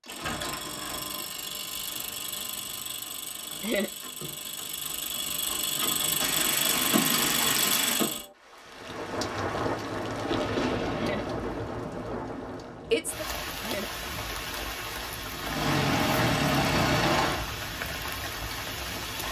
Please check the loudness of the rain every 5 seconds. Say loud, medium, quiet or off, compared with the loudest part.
off, loud, loud, loud.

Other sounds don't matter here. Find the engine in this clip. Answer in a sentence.
The engine can be heard from 0.0 to 8.2 s and from 15.4 to 17.4 s.